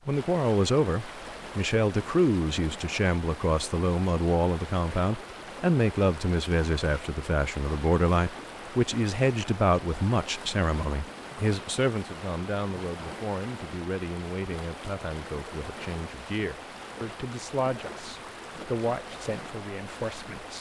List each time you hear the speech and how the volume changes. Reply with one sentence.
The speech can be heard from 0.1 to 20.5 s, getting quieter.